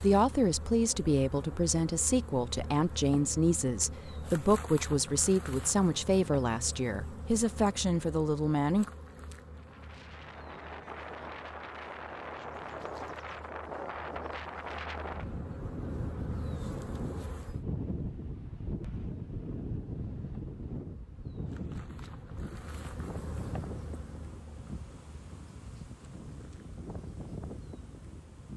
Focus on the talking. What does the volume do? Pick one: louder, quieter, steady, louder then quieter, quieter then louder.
steady.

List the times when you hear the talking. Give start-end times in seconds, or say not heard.
0.0-8.9.